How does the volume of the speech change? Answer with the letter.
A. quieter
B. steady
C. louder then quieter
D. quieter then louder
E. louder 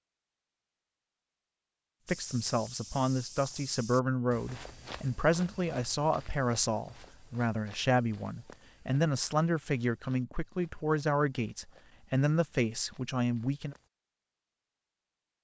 B.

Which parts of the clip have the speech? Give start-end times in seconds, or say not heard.
2.0-13.8.